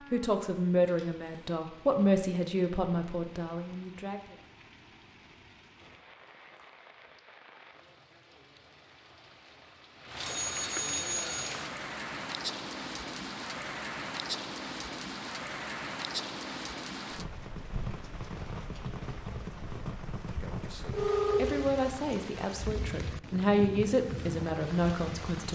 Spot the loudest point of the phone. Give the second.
21 s.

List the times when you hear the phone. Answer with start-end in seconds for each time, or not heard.
0.8-1.4, 10.2-11.5, 20.9-21.7.